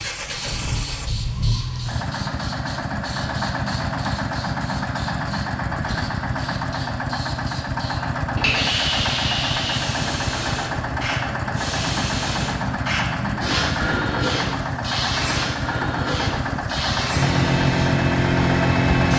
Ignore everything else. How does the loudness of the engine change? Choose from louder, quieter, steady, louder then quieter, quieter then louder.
steady.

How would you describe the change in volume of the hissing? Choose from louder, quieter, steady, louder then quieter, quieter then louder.
louder.